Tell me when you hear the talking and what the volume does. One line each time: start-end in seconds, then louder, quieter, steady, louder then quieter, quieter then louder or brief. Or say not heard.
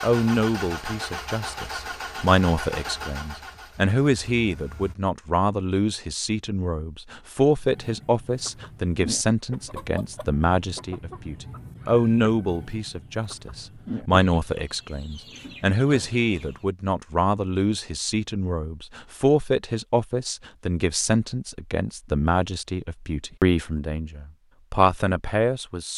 0.0-25.9 steady.